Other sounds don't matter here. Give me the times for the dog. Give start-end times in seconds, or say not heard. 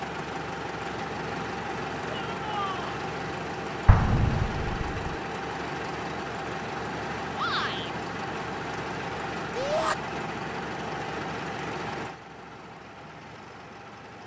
not heard.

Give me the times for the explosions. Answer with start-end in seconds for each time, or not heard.
3.9-5.0.